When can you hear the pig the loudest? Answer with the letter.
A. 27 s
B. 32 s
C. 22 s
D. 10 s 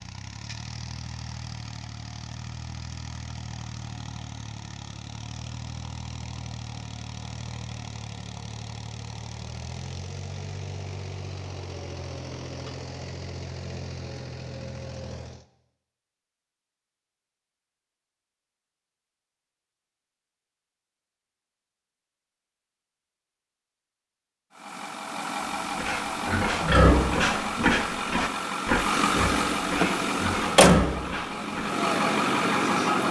A.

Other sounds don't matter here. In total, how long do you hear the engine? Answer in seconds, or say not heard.
24 s.